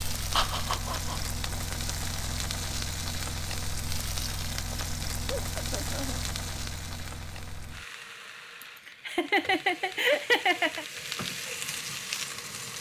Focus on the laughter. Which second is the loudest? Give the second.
10 s.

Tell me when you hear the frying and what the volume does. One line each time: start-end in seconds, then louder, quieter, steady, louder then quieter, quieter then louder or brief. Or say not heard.
0.0-12.7 quieter then louder.